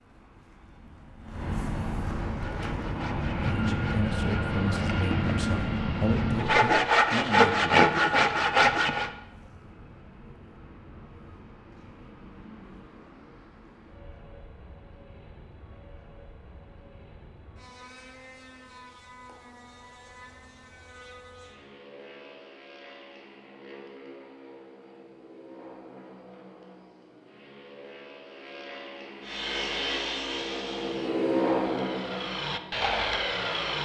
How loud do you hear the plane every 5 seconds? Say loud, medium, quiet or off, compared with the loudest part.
loud, loud, quiet, quiet, quiet, quiet, loud.